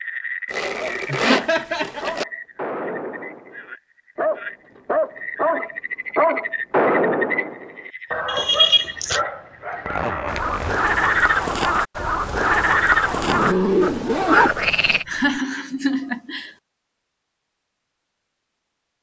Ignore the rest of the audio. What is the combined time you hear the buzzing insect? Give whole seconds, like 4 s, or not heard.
not heard.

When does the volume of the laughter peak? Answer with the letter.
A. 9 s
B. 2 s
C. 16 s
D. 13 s
A.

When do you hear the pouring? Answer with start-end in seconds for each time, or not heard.
not heard.